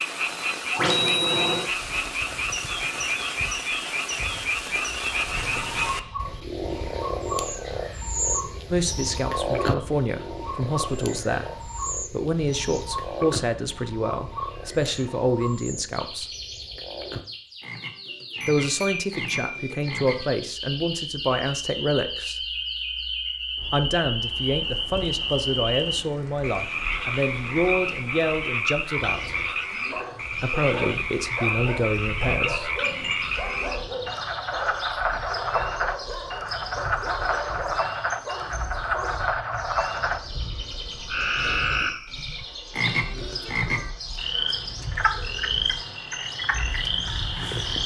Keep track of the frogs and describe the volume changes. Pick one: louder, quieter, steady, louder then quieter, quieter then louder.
quieter then louder.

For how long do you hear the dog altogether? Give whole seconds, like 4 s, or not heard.
10 s.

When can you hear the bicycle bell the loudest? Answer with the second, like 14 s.
1 s.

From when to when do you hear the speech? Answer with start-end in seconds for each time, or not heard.
8.7-16.3, 18.4-22.4, 23.7-29.4, 30.4-32.8.